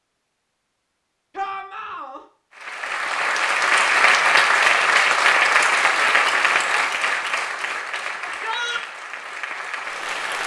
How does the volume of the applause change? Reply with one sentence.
The loudness of the applause goes down.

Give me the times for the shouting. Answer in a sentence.
You can hear the shouting from 1.4 to 2.2 s and from 8.2 to 8.8 s.